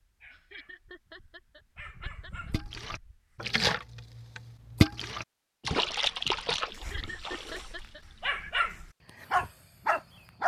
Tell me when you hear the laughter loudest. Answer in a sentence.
The volume of the laughter peaks at 7 seconds.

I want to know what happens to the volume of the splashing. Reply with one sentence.
The loudness of the splashing goes down.